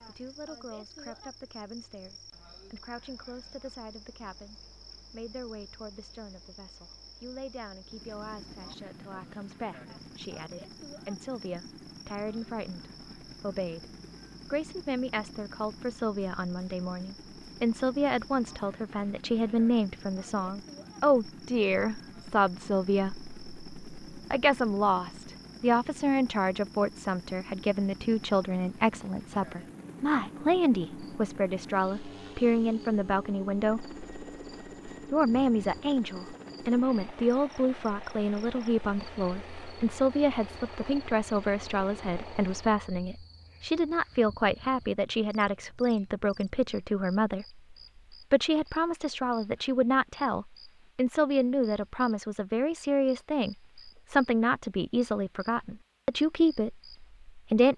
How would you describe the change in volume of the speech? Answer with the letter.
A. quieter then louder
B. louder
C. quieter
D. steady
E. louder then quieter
B.